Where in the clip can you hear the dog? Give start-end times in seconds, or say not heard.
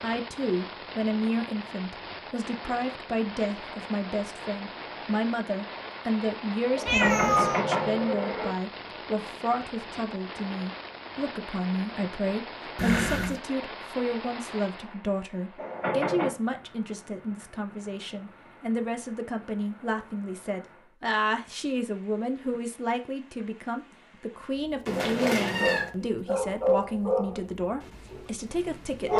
25.1-29.1.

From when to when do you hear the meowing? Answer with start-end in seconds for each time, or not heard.
6.8-7.7, 12.8-13.3, 24.9-25.9.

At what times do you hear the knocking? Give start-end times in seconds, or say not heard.
6.8-8.5, 15.6-16.4.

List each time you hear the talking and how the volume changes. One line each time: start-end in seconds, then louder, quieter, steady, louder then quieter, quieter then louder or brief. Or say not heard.
0.0-29.1 steady.